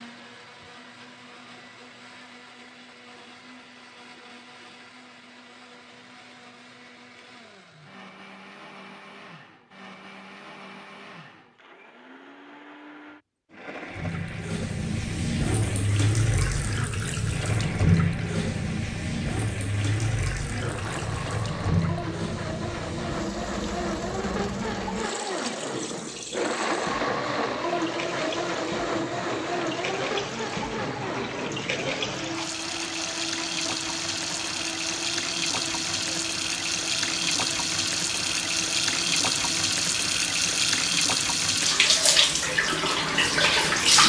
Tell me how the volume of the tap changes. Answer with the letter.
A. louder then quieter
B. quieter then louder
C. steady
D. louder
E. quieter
B.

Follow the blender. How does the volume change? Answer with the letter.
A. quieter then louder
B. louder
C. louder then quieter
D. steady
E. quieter
C.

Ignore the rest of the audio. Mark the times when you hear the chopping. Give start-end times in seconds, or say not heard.
not heard.